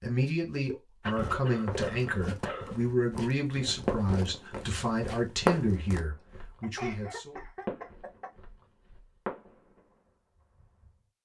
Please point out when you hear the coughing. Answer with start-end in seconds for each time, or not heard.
1.0-2.8, 6.6-8.3.